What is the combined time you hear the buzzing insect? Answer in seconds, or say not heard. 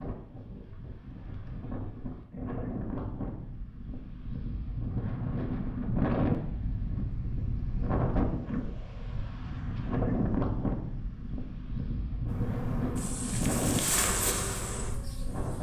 3 s.